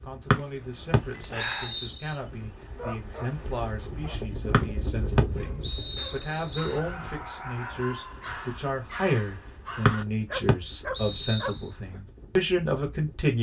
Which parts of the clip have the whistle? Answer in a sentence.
You can hear the whistle from 0.3 to 2.1 s, from 4.5 to 6.8 s and from 9.8 to 11.6 s.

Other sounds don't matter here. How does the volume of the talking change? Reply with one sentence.
The volume of the talking goes up.